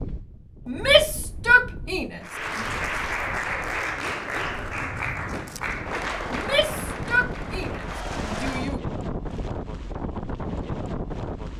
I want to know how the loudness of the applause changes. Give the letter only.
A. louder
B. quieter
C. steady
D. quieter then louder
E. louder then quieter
B.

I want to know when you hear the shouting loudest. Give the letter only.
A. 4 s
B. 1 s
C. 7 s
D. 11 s
B.